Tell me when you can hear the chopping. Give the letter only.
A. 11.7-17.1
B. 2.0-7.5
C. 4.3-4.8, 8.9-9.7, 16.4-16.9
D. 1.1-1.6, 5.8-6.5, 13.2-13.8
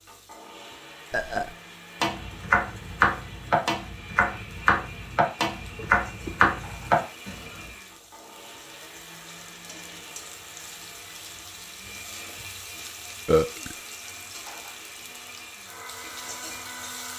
B.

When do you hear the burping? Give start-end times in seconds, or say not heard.
1.1-1.6, 5.8-6.5, 13.2-13.8.